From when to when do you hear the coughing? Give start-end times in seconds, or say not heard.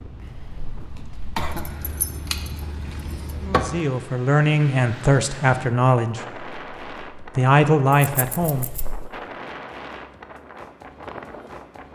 0.2-1.8, 8.4-9.1.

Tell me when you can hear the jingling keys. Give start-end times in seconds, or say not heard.
1.4-3.8, 8.0-8.8.